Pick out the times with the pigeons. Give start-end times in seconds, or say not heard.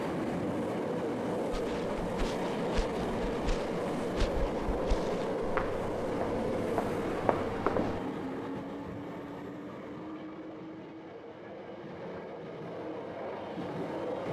not heard.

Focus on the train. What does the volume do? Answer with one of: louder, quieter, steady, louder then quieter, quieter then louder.
quieter.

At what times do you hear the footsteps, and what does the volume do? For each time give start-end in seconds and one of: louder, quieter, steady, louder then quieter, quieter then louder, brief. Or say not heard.
1.5-8.0 louder.